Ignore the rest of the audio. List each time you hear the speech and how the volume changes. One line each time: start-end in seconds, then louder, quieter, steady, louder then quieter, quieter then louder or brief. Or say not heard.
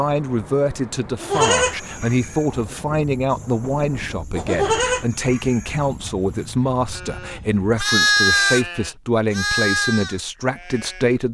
0.0-11.2 steady.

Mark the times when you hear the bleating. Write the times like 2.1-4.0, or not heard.
1.2-11.1.